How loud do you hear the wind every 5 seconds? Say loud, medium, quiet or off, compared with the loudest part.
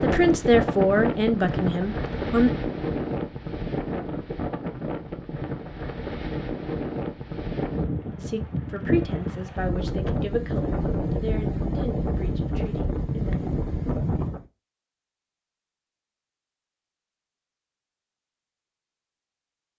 loud, loud, loud, off.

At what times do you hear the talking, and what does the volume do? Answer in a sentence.
You can hear the talking briefly from 0.0 to 2.5 s; and from 8.2 to 13.4 s, getting quieter.